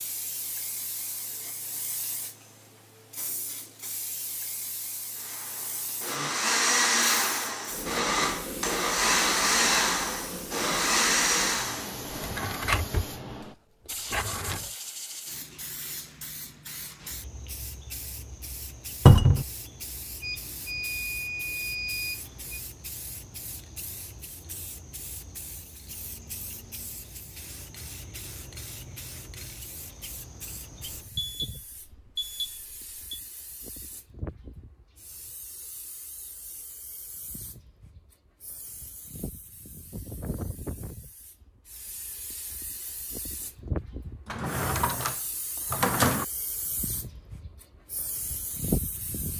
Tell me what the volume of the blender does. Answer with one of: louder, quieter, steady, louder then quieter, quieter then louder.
steady.